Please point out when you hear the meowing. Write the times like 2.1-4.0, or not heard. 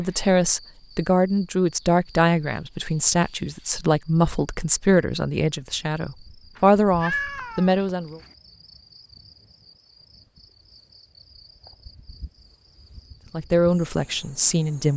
6.5-7.8.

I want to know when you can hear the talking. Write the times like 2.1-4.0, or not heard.
0.0-8.2, 13.3-14.9.